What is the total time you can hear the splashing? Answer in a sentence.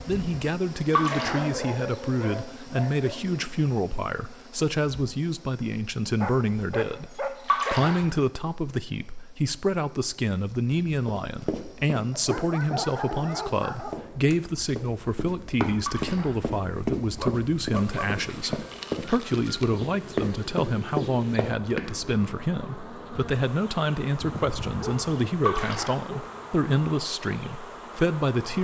You can hear the splashing for 2 seconds altogether.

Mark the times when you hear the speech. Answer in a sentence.
You can hear the speech from 0.0 to 28.5 s.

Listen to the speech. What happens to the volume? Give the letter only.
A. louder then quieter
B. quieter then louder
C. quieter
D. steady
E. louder
D.